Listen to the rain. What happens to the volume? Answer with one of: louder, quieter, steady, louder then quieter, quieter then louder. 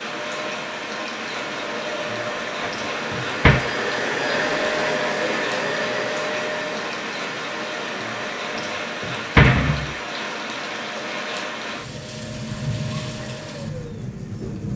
steady.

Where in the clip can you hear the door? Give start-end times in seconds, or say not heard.
2.1-3.6, 8.1-9.9.